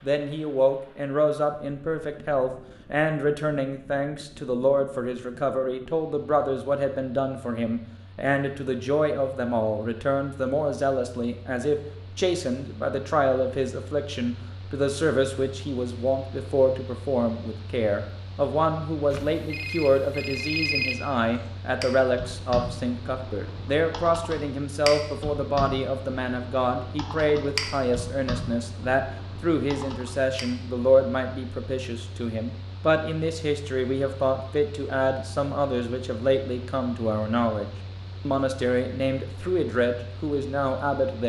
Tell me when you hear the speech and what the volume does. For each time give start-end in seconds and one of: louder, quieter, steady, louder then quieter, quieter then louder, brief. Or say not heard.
0.0-41.2 steady.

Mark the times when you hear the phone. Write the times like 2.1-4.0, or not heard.
19.1-20.9.